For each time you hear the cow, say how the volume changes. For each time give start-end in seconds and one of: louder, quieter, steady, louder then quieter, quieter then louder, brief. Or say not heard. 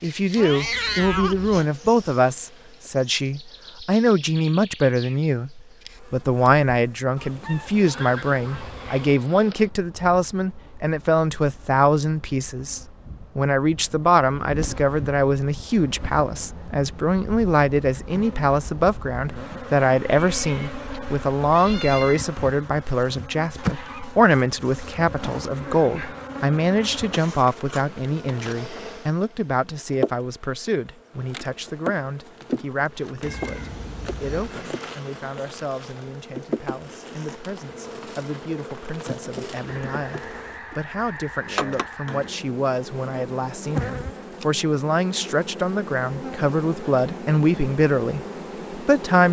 not heard.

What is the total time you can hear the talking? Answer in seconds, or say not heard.
49 s.